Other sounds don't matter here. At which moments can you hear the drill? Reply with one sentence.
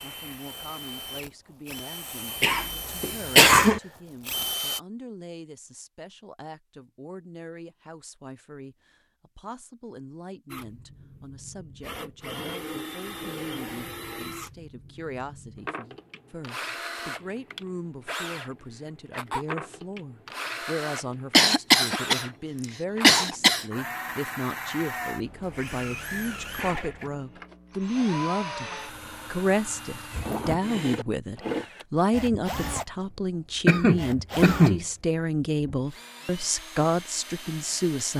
You can hear the drill from 0.0 to 4.8 s and from 10.5 to 38.1 s.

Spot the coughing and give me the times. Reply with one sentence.
The coughing can be heard from 2.4 to 3.8 s, from 21.3 to 22.2 s, from 23.0 to 23.6 s and from 33.6 to 34.9 s.